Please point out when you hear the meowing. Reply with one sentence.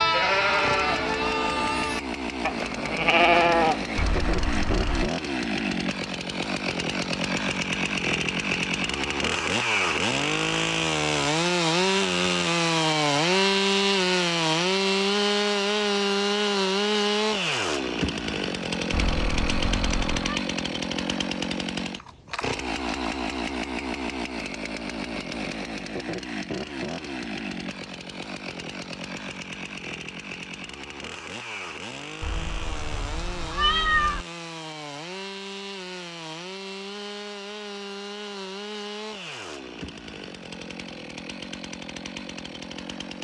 The meowing can be heard from 4.0 to 5.1 s, from 18.9 to 20.4 s and from 32.2 to 34.2 s.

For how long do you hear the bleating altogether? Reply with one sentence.
The bleating can be heard for 4 seconds in total.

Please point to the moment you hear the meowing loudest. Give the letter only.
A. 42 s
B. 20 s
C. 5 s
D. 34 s
D.